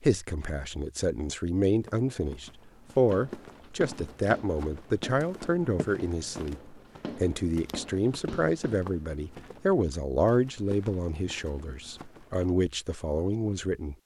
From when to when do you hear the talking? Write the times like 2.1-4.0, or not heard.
0.0-13.9.